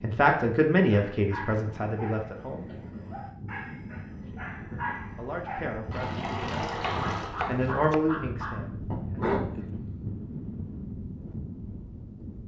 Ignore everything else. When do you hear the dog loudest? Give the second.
9 s.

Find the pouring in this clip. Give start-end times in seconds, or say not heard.
5.9-7.3.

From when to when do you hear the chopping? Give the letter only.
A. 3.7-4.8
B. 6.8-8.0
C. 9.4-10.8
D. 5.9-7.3
B.